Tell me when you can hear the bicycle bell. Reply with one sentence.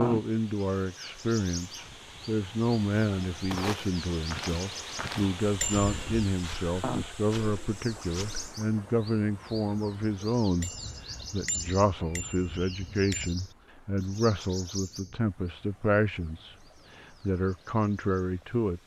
The bicycle bell can be heard from 5.6 to 6.2 s and from 10.6 to 13.3 s.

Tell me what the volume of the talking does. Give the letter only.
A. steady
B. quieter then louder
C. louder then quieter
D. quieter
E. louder
A.